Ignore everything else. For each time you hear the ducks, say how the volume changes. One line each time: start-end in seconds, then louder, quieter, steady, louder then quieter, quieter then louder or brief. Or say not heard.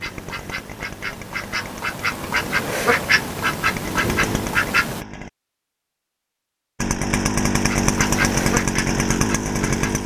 0.0-5.0 louder
7.5-10.0 brief.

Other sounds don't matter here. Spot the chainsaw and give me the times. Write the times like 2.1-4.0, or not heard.
0.0-5.3, 6.8-10.0.